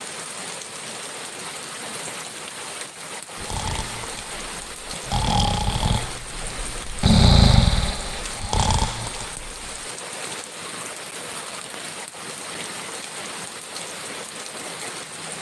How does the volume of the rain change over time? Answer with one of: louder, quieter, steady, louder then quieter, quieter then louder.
steady.